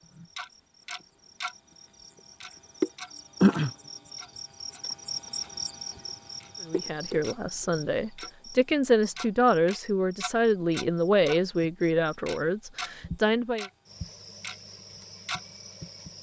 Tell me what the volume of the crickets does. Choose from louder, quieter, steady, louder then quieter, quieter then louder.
quieter then louder.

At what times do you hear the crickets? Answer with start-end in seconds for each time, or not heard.
0.0-16.1.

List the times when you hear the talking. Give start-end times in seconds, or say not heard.
6.6-13.7.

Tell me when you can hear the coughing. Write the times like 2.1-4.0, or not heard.
not heard.